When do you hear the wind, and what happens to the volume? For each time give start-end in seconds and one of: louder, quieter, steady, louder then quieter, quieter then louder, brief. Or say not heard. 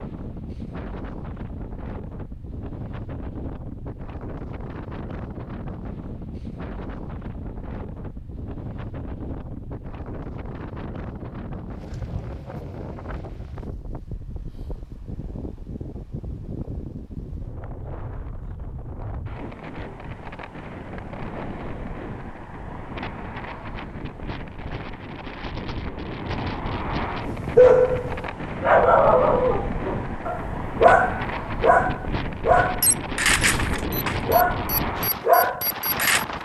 0.0-36.4 louder.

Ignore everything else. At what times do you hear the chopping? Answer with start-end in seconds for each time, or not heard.
not heard.